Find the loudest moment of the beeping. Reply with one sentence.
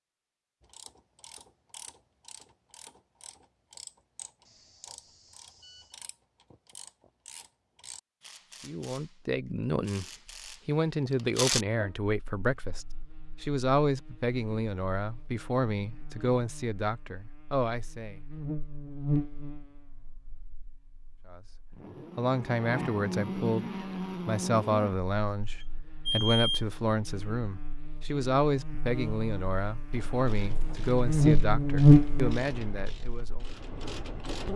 The loudest moment of the beeping is at 26 seconds.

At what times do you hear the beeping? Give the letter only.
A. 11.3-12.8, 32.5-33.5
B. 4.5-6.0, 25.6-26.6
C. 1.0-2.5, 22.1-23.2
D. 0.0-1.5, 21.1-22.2
B.